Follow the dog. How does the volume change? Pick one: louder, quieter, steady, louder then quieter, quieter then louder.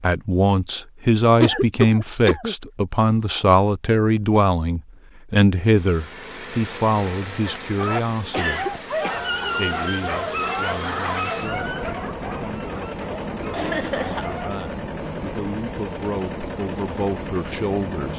quieter.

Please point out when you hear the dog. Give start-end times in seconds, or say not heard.
7.8-14.5.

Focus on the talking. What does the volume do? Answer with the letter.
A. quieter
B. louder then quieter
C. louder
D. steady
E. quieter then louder
E.